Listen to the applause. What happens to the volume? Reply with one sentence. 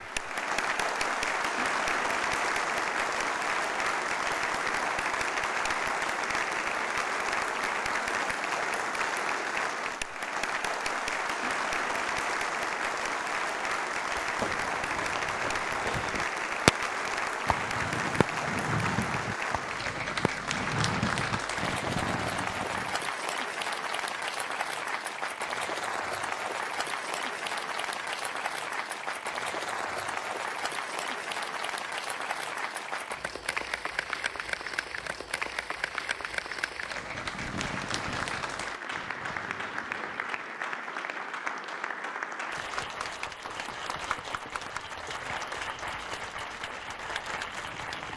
The loudness of the applause goes down.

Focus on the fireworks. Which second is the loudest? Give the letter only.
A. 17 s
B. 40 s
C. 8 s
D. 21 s
A.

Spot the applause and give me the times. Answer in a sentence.
You can hear the applause from 0.0 to 48.1 s.